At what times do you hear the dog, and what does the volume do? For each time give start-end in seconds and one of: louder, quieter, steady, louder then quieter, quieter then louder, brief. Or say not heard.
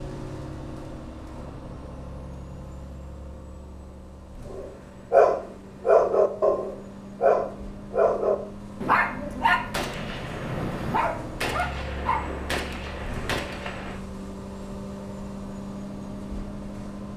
4.5-12.2 quieter.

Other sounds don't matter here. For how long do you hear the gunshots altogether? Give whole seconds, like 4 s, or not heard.
4 s.